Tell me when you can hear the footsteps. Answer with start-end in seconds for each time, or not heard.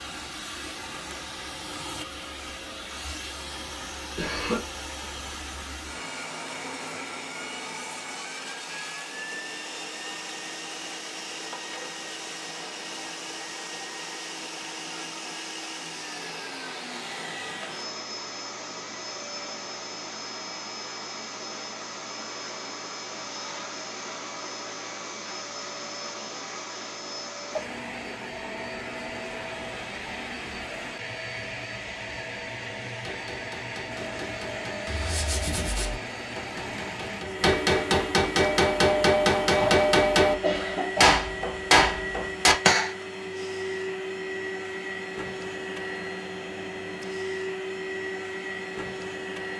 not heard.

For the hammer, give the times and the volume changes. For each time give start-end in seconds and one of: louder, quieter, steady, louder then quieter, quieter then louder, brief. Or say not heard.
33.0-43.0 louder.